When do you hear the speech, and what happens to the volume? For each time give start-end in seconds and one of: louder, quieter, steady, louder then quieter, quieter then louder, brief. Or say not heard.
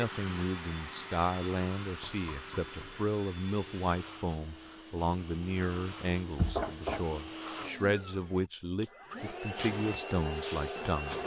0.0-11.2 steady.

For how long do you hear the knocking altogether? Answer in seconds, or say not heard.
2 s.